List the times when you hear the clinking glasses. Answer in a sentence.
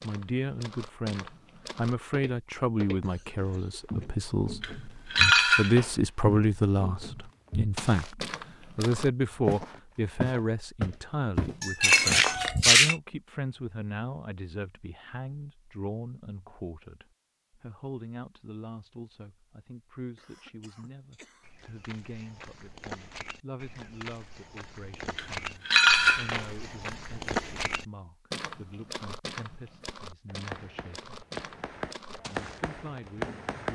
You can hear the clinking glasses from 4.6 to 5.9 s, from 11.6 to 12.9 s and from 25.1 to 26.4 s.